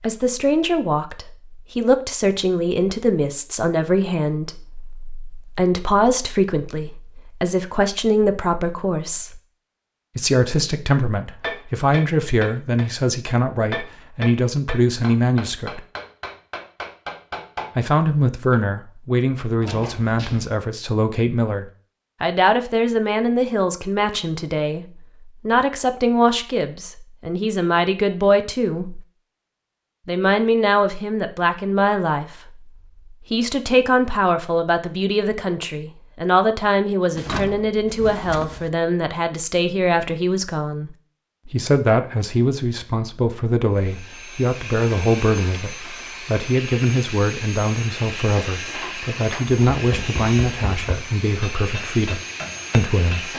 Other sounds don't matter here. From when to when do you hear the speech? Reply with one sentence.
The speech can be heard from 0.0 to 9.4 s, from 10.2 to 15.8 s, from 17.8 to 29.1 s and from 30.1 to 53.3 s.